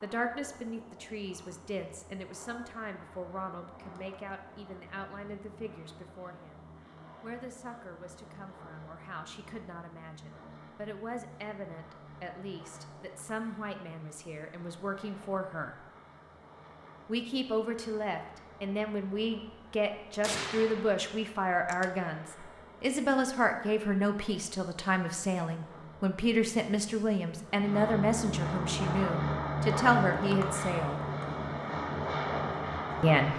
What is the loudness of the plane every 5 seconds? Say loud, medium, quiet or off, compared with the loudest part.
quiet, quiet, quiet, quiet, quiet, loud, loud.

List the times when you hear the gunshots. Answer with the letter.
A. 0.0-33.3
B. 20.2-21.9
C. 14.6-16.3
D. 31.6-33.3
B.